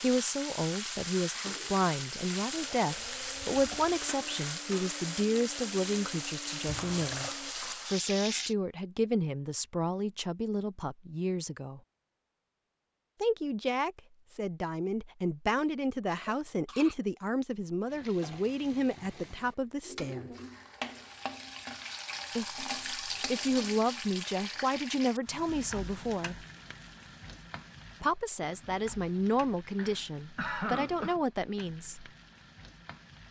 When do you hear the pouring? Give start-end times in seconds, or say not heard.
6.7-7.3.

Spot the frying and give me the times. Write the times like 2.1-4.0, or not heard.
0.0-8.6, 17.9-33.2.